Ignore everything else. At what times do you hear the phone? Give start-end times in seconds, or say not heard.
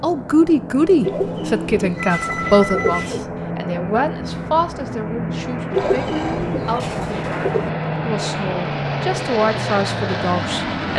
1.9-3.1, 5.7-6.5.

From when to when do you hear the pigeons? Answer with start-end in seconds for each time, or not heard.
1.1-3.2, 5.7-7.7.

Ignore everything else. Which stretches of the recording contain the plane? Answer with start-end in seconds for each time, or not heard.
0.0-10.9.